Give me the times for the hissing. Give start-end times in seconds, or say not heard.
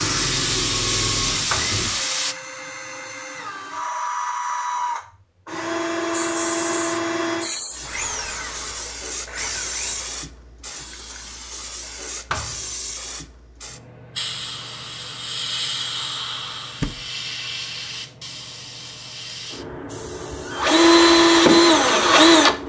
0.0-2.4, 6.1-22.6.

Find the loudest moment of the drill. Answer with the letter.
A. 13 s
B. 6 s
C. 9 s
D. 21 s
D.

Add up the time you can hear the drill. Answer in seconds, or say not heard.
12 s.